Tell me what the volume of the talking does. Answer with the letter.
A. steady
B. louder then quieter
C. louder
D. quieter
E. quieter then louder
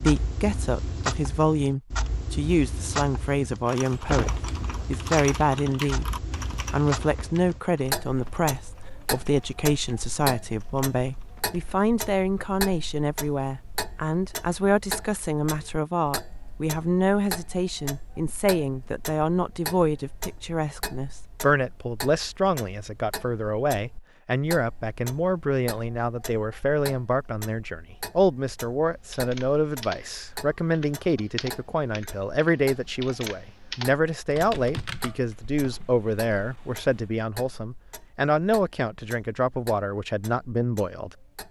A.